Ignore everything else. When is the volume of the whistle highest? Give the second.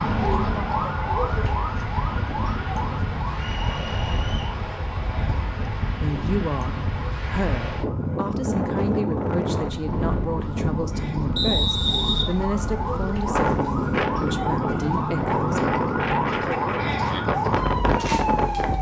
12 s.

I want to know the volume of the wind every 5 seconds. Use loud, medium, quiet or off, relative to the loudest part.
medium, loud, loud, loud.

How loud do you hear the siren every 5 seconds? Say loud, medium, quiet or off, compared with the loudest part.
loud, quiet, medium, loud.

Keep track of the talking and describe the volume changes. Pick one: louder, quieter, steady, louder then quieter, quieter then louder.
steady.